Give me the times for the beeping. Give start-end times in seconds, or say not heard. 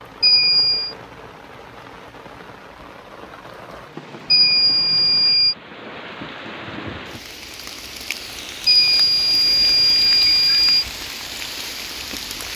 0.2-0.9, 4.3-5.5, 8.7-10.8.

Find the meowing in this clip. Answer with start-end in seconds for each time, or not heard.
not heard.